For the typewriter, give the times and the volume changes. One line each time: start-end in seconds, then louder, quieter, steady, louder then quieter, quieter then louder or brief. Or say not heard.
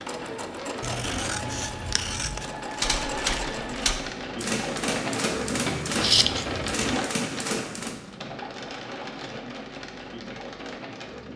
2.7-8.1 steady.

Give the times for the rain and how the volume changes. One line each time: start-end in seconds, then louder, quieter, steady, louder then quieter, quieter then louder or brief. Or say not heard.
0.0-11.3 louder then quieter.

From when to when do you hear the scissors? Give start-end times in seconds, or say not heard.
0.8-2.5, 6.0-7.0.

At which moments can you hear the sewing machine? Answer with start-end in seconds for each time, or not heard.
0.0-4.0.